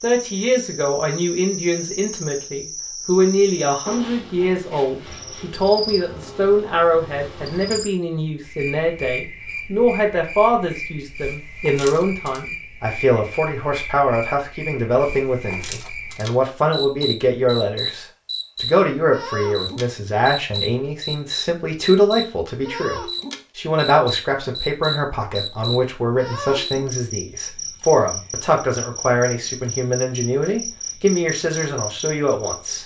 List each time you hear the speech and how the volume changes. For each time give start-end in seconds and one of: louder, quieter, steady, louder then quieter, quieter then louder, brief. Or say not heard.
0.0-32.8 steady.